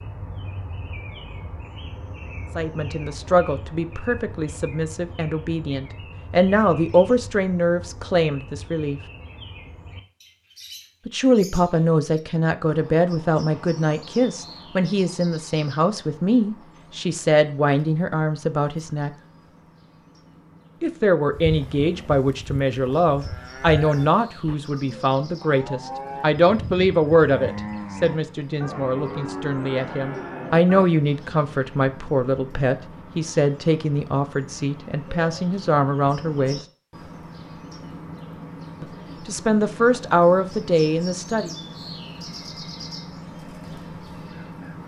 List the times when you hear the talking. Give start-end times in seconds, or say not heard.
2.5-9.0, 11.1-19.1, 20.8-36.6, 38.8-41.5.